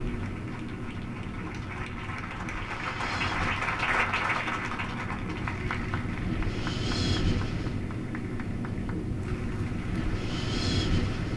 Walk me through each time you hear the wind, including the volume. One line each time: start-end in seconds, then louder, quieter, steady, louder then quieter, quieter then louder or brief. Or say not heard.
0.0-11.3 louder.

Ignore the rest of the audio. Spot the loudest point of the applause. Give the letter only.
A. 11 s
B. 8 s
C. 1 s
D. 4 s
D.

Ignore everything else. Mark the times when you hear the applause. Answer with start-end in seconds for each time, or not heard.
0.0-11.3.